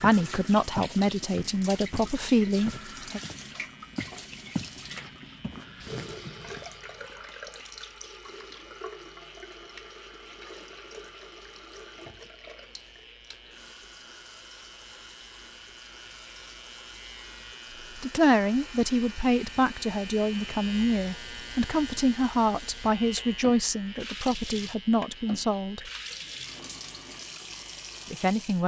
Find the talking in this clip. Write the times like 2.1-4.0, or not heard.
0.0-3.2, 17.9-25.8, 28.1-28.6.